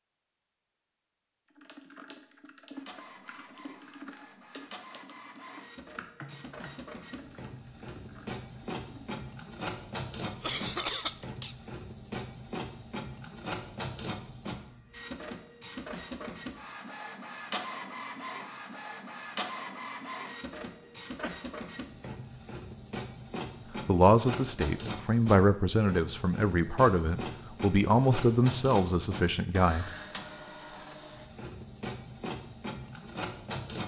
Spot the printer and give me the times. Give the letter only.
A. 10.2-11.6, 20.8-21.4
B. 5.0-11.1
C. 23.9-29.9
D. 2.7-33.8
D.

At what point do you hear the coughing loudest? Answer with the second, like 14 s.
11 s.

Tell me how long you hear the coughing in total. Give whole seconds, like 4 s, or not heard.
2 s.